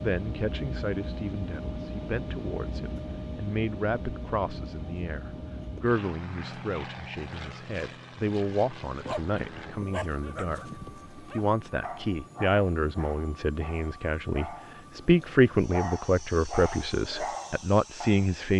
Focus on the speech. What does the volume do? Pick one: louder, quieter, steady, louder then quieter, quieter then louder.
louder.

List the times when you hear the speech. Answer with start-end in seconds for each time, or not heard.
0.0-18.5.